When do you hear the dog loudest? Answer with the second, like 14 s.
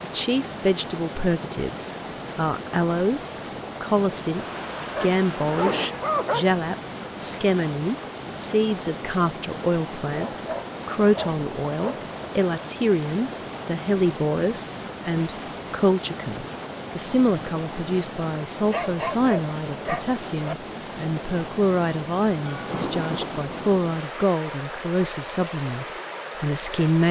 6 s.